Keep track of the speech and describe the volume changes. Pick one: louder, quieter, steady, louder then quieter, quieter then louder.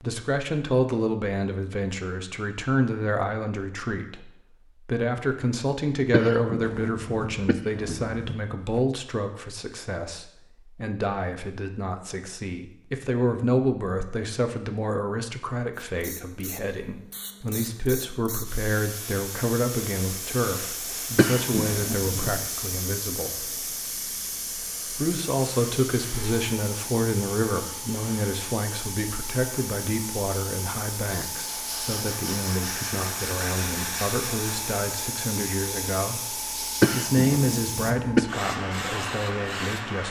steady.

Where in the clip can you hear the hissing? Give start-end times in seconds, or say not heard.
15.8-40.0.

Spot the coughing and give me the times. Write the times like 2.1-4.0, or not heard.
6.1-8.8, 21.1-22.4, 36.8-38.2.